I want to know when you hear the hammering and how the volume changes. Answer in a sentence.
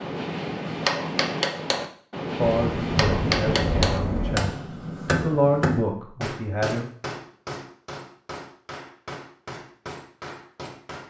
The hammering can be heard from 0.0 to 11.0 s, getting quieter.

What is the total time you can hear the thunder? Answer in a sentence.
The thunder can be heard for 2 seconds in total.